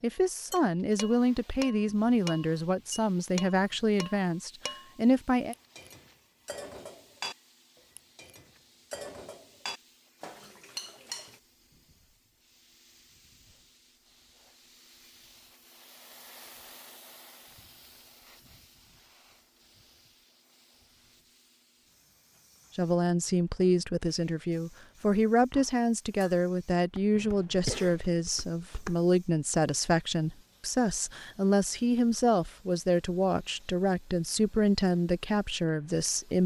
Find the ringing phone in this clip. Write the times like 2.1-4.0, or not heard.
not heard.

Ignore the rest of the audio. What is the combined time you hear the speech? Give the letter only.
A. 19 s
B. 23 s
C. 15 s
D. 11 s
A.